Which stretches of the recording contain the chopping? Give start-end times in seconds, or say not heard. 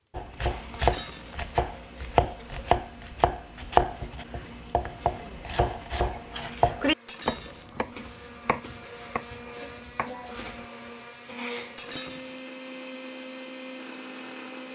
0.1-10.9.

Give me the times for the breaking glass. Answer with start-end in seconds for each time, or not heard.
0.8-1.4, 7.0-7.8, 11.8-12.4.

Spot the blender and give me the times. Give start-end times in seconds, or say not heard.
0.3-14.7.